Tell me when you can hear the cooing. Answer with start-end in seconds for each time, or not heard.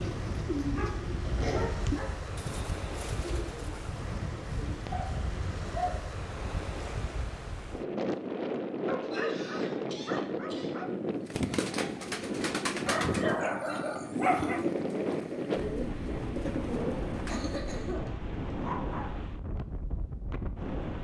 0.0-5.1, 11.2-17.7.